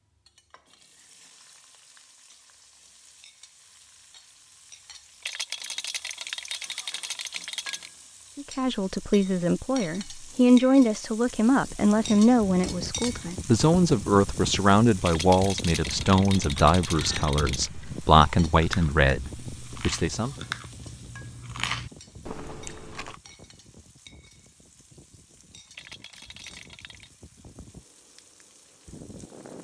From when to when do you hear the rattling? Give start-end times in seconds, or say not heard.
5.2-7.9, 15.0-17.7, 25.7-27.1.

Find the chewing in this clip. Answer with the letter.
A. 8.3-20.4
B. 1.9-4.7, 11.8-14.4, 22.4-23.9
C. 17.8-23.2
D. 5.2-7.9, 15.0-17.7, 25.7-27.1
C.